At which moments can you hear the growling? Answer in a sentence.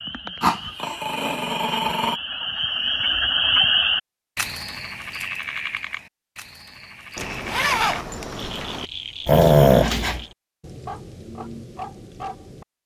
You can hear the growling from 0.4 to 2.1 s and from 9.2 to 10.2 s.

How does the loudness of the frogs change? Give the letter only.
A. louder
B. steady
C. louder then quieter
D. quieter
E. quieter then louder
C.